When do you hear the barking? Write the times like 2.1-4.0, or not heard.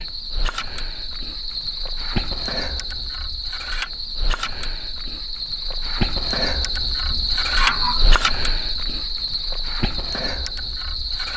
7.0-8.1.